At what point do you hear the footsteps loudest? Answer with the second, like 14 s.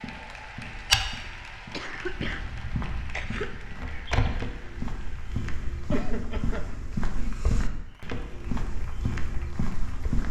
1 s.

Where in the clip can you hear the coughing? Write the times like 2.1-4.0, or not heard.
1.7-3.5, 5.9-6.7.